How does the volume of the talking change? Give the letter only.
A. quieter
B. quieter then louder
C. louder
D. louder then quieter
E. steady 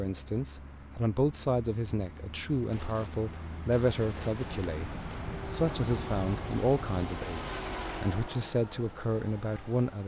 E.